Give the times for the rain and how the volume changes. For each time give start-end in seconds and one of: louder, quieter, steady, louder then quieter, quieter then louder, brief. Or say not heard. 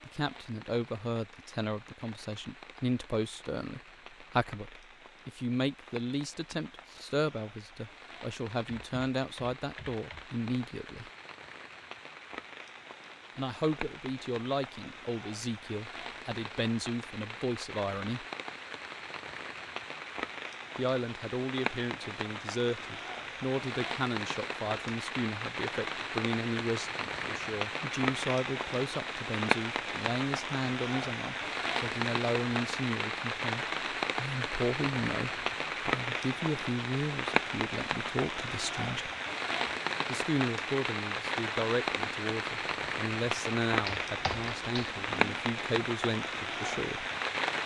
0.0-47.6 louder.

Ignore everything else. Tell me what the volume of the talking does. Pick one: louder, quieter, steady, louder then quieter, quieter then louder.
steady.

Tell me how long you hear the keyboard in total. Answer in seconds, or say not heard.
3 s.